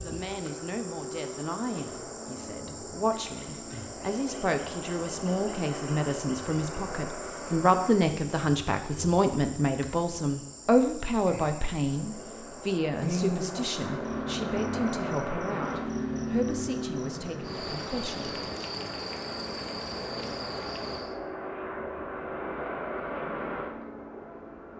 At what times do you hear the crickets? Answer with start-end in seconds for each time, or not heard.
0.0-21.2.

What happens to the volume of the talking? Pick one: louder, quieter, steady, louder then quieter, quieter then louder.
louder then quieter.